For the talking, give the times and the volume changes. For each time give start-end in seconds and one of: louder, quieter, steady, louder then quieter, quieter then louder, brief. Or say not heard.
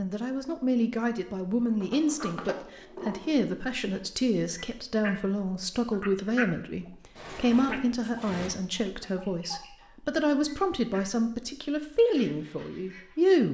0.0-13.4 steady.